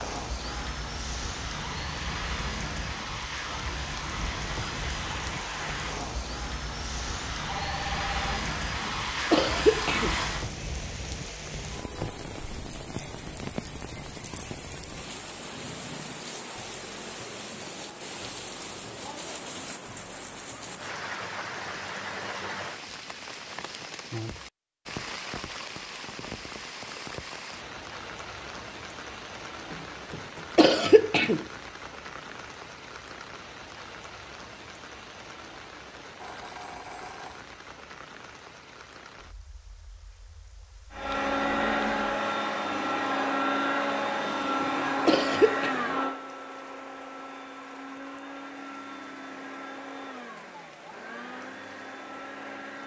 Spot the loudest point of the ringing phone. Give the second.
8 s.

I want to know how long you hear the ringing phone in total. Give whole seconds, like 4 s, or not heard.
2 s.